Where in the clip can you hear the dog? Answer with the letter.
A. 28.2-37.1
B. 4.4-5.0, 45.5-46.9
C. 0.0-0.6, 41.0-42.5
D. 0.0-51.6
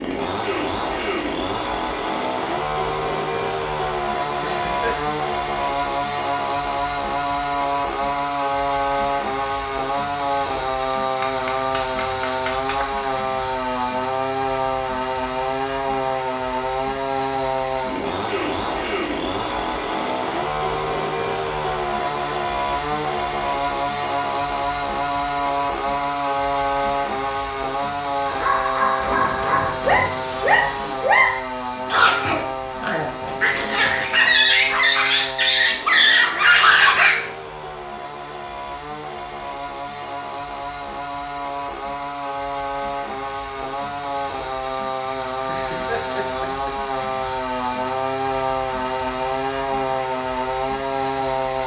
A.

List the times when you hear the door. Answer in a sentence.
You can't hear the door here.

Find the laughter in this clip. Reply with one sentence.
You can hear the laughter from 4.4 to 5.0 s and from 45.5 to 46.9 s.